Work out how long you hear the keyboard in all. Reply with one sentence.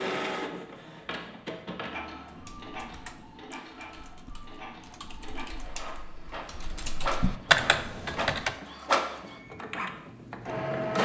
The keyboard can be heard for 6 seconds in total.